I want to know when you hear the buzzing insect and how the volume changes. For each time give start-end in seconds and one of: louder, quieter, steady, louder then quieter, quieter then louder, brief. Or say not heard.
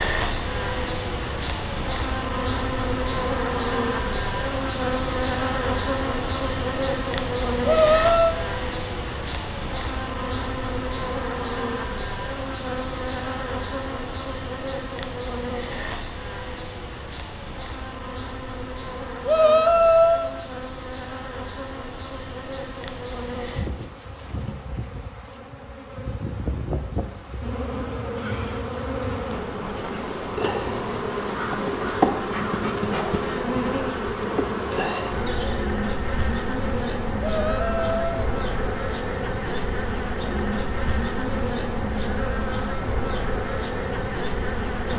0.0-44.9 quieter then louder.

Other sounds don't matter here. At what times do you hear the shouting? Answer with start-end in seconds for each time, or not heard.
7.6-8.3, 19.2-20.4, 37.1-38.3.